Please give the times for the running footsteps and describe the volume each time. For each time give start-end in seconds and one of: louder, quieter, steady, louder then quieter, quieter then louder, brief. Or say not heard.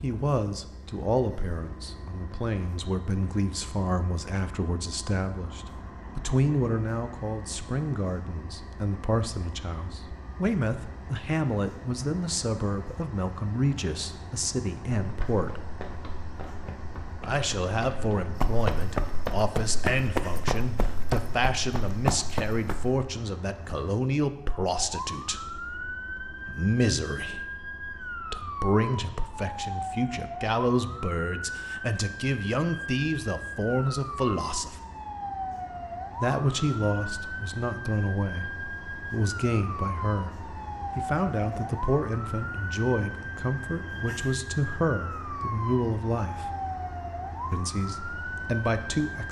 15.0-23.0 louder.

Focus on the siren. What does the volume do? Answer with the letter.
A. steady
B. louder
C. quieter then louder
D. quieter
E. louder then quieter
A.